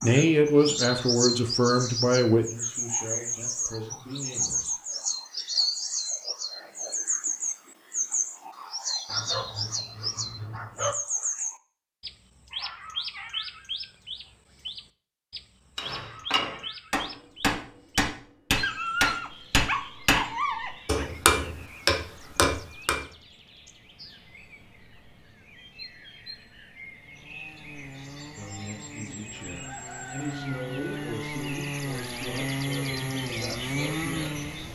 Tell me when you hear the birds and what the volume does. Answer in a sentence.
The birds can be heard from 0.0 to 34.7 s, getting quieter then louder.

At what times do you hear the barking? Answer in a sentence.
The barking can be heard from 9.1 to 10.9 s and from 18.6 to 21.1 s.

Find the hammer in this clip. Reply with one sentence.
You can hear the hammer from 15.8 to 23.0 s.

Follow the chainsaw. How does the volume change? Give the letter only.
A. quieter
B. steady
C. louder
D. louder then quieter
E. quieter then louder
C.